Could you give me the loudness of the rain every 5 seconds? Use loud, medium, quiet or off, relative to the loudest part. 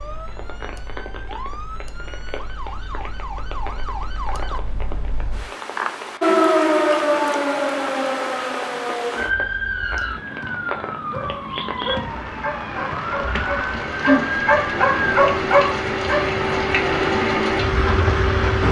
quiet, quiet, medium, loud.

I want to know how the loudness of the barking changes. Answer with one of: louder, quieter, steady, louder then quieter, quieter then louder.
louder.